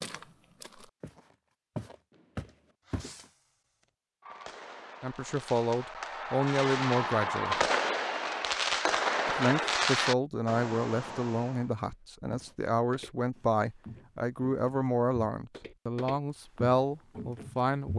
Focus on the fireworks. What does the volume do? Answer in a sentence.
The volume of the fireworks goes up.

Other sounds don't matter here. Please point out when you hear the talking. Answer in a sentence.
You can hear the talking from 5.0 to 7.5 s and from 9.2 to 17.9 s.